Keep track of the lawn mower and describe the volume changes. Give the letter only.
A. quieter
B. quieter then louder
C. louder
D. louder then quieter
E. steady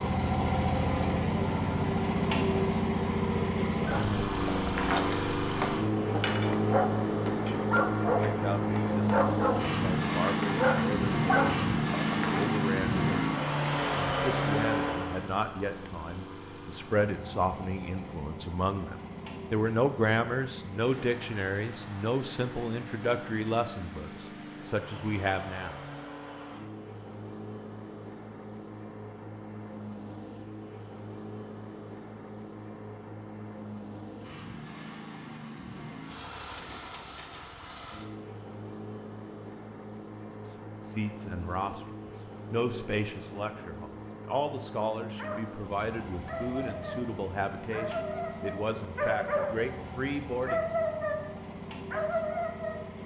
A.